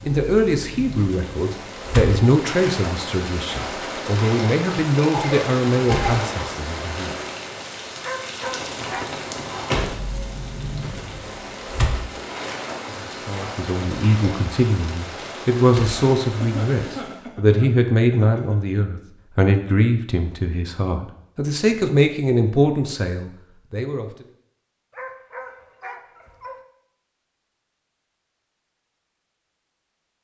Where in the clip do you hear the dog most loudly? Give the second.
8 s.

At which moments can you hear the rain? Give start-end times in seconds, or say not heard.
0.0-17.2.